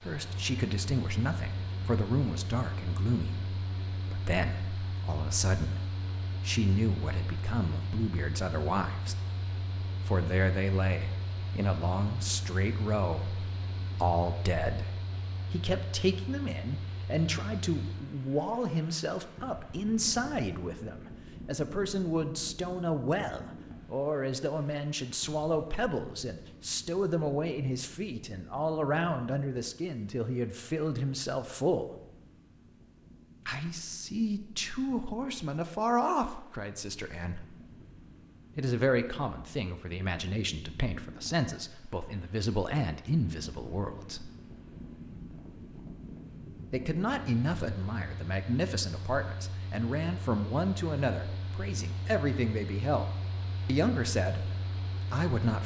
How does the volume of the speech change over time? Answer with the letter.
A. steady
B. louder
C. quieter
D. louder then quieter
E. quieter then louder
A.